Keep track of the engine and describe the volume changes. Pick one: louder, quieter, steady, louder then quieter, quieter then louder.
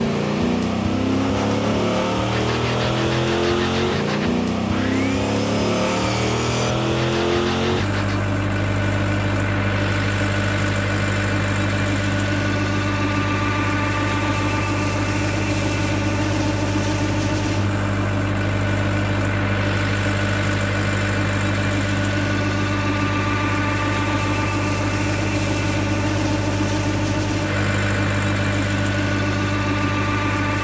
steady.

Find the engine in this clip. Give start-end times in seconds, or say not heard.
0.0-30.5.